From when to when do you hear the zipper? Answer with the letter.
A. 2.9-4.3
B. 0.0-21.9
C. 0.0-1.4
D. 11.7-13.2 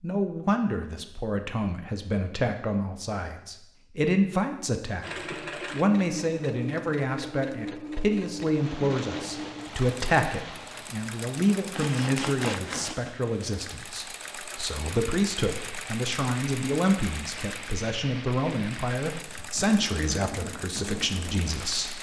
D.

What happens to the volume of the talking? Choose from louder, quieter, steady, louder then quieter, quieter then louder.
steady.